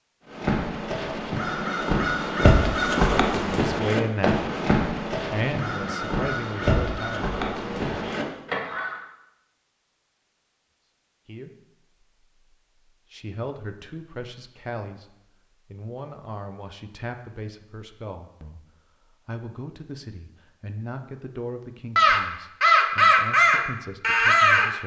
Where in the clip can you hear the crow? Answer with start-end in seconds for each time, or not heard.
0.2-9.0, 21.9-24.7.